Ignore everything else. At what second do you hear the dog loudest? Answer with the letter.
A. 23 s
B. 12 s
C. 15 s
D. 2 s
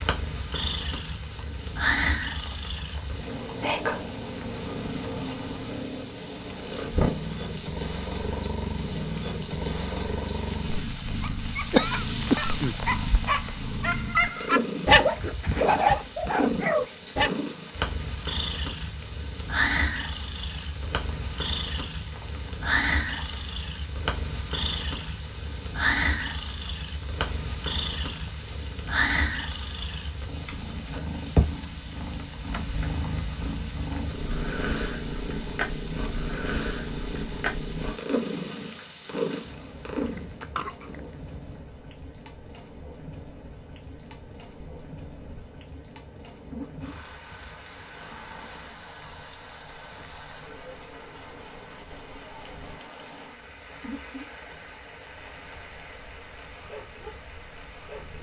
C.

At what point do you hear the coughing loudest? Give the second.
12 s.